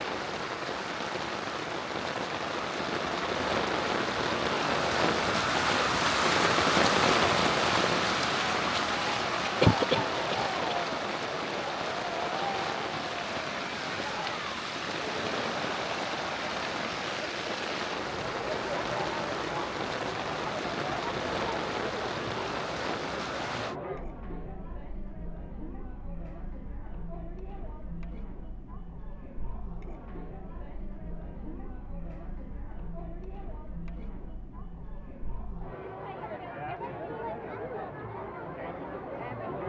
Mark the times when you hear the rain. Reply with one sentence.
You can hear the rain from 0.0 to 23.8 s.